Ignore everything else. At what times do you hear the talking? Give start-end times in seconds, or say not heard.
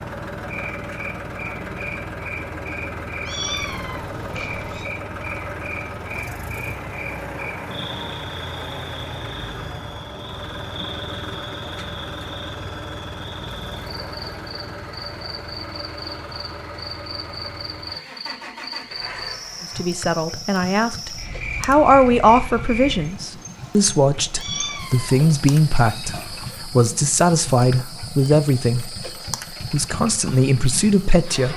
19.8-29.1, 29.7-31.5.